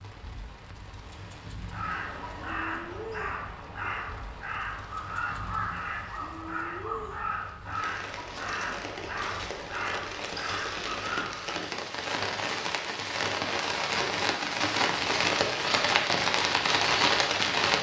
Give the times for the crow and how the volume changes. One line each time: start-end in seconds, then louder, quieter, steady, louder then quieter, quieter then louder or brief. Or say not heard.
1.7-11.6 steady.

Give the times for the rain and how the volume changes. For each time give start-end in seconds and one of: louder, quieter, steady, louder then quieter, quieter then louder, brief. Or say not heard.
0.0-17.7 louder.